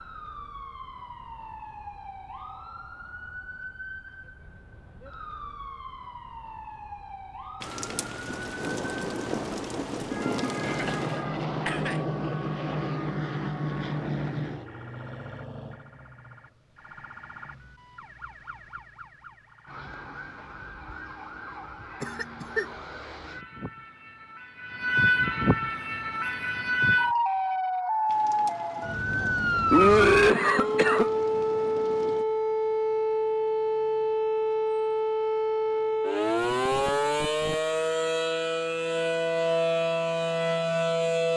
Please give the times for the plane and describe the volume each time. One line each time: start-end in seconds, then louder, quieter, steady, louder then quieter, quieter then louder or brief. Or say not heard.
10.4-14.7 steady.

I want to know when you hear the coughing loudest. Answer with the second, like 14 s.
30 s.